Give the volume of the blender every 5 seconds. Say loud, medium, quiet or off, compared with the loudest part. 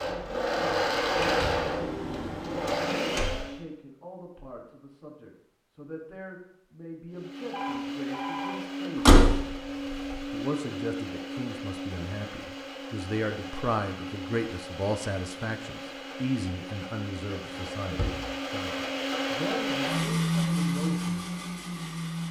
loud, medium, medium, medium, loud.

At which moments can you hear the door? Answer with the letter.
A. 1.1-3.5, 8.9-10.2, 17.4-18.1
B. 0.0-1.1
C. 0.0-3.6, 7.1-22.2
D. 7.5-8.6
A.